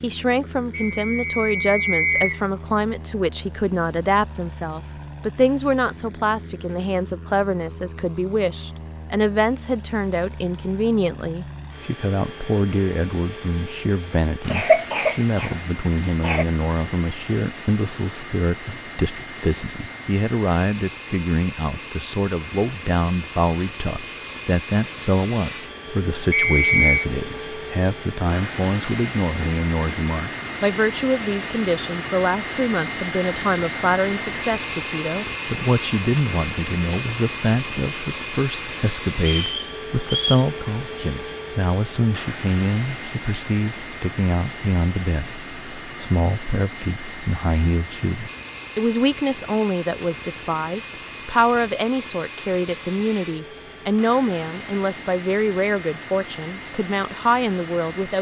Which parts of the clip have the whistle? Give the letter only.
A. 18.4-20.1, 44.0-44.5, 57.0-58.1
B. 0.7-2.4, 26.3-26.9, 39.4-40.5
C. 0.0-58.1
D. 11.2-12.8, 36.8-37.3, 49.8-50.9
B.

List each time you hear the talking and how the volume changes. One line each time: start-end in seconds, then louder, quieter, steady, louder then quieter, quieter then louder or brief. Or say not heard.
0.0-58.1 steady.